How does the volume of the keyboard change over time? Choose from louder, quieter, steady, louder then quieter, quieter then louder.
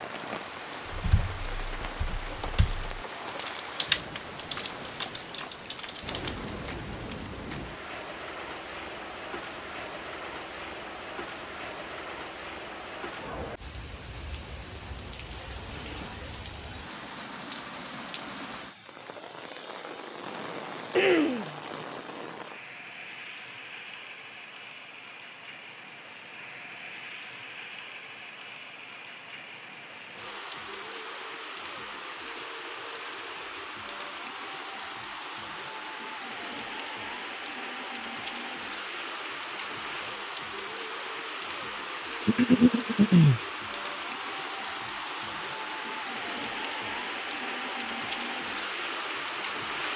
louder then quieter.